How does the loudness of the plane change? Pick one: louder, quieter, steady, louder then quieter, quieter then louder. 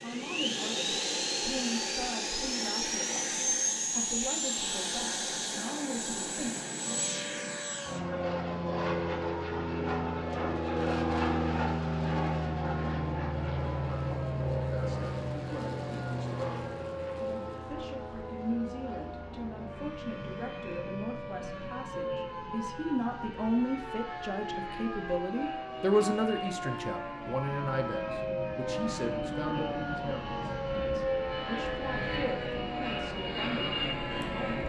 quieter then louder.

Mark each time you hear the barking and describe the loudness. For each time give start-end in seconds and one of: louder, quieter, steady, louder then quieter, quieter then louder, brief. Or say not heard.
not heard.